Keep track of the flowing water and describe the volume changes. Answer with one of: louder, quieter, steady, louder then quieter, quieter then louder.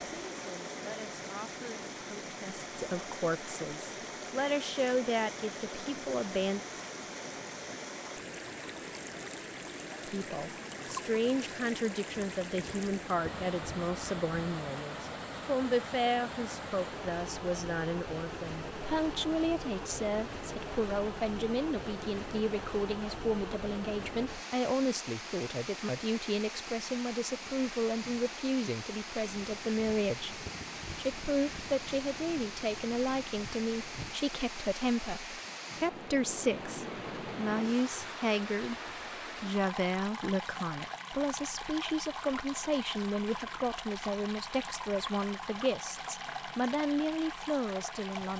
steady.